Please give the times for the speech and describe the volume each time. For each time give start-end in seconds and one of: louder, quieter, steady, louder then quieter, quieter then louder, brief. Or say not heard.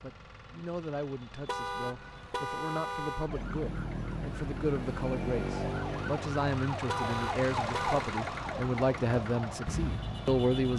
0.0-10.7 louder.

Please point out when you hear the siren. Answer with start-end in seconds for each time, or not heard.
0.0-10.7.